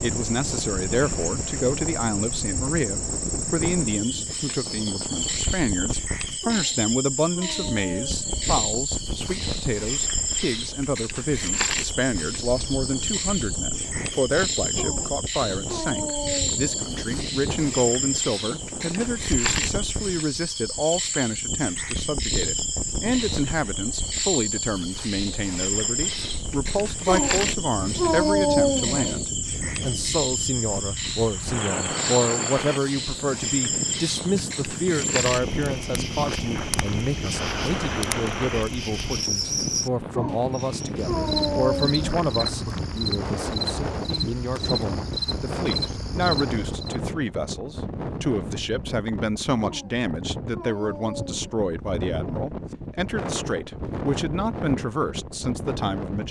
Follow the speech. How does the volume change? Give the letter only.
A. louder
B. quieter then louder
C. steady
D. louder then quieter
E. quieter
C.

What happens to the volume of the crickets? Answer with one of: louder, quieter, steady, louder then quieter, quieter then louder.
steady.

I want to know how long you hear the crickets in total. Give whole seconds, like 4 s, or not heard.
47 s.